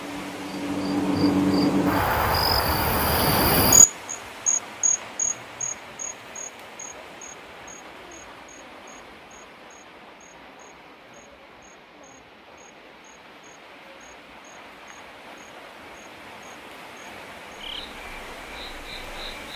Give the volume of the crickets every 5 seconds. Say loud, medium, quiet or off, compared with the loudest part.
loud, quiet, quiet, quiet.